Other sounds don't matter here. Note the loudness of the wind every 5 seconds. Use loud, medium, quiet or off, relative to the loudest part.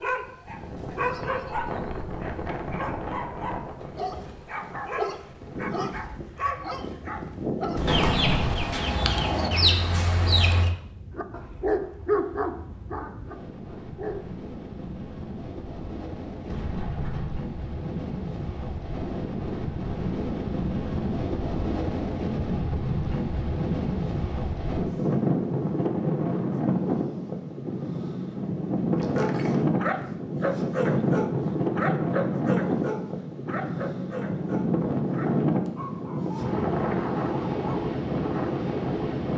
medium, quiet, quiet, medium, loud, loud, loud, loud.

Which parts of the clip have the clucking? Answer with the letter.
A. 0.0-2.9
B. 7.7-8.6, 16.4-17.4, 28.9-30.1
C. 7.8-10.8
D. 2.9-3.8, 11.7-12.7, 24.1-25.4
C.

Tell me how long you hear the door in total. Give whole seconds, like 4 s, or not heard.
3 s.